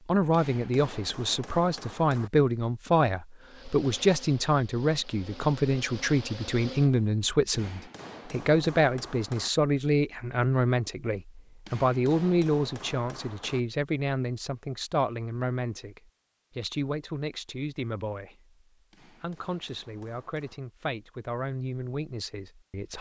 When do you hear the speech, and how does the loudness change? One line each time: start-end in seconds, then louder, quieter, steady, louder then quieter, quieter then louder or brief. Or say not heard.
0.1-22.9 quieter.